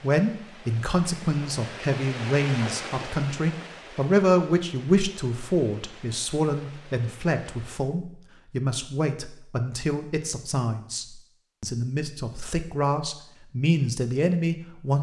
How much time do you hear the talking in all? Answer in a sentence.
You can hear the talking for 15 seconds altogether.